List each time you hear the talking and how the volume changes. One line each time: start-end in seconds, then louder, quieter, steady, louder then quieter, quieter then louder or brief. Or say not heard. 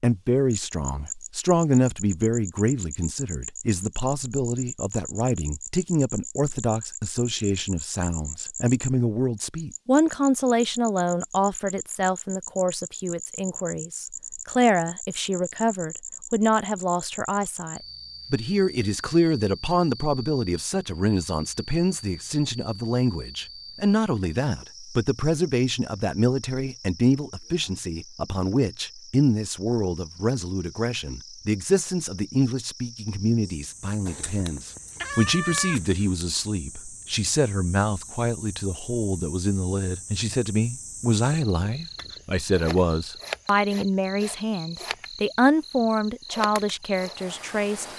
0.0-47.9 steady.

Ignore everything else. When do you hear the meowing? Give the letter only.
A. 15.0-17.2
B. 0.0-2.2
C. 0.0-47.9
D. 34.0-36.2
D.